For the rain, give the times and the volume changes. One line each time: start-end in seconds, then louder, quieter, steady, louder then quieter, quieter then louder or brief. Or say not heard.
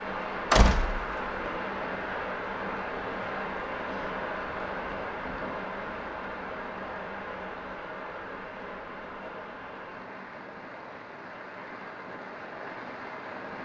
0.0-13.5 quieter.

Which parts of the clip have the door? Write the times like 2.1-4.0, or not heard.
0.5-1.5.